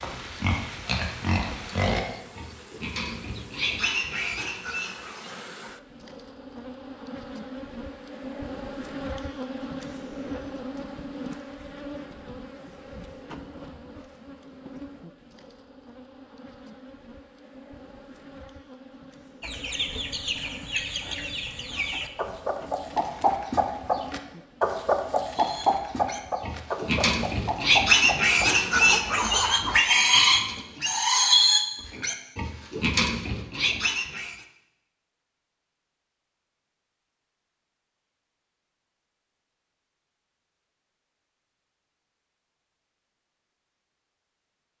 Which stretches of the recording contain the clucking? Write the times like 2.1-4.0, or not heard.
19.4-29.8.